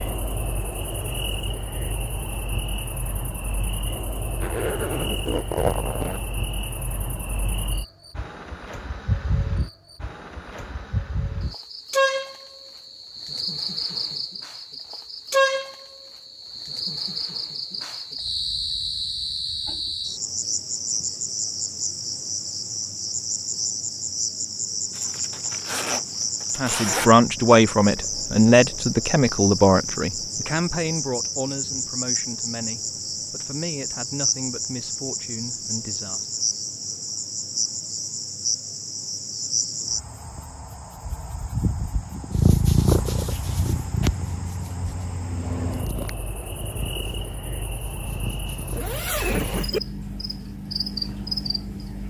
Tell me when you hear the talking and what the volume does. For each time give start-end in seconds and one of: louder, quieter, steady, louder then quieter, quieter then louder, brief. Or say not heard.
26.6-36.4 quieter.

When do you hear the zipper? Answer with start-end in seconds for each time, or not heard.
4.4-6.2, 24.9-27.1, 48.7-49.8.